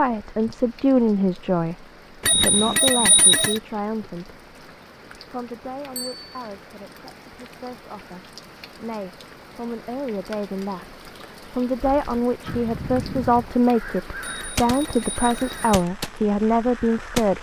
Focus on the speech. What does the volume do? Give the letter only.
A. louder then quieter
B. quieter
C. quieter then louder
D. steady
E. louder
C.